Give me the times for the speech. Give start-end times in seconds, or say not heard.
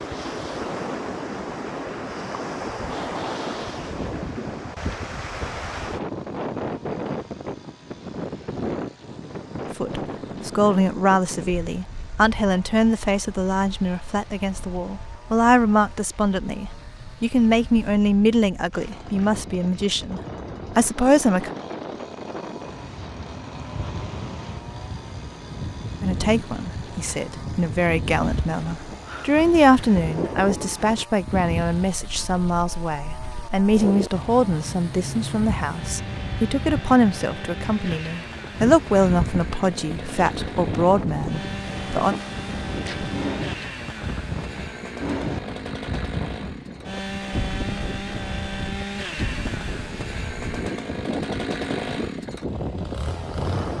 9.8-21.5, 26.0-42.1.